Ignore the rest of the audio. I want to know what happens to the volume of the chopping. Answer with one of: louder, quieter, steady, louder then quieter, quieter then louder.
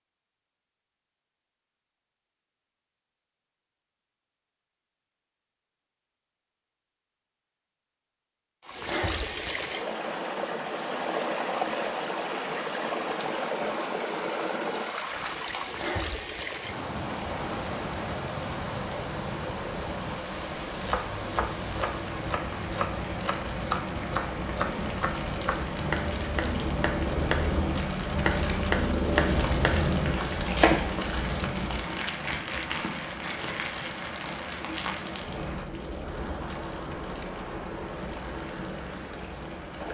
louder.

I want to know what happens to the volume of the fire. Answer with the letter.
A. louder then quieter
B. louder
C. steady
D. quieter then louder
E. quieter
A.